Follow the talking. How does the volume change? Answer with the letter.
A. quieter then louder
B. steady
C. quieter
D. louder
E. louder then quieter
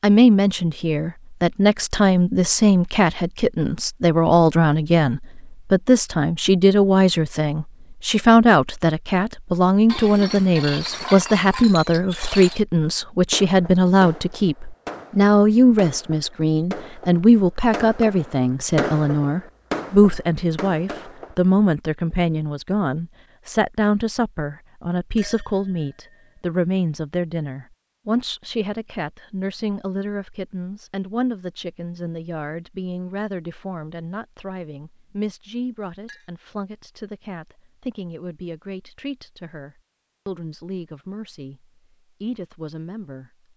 C.